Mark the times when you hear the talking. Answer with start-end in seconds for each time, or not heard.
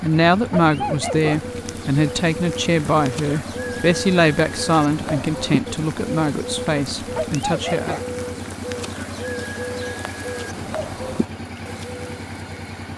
0.0-8.0.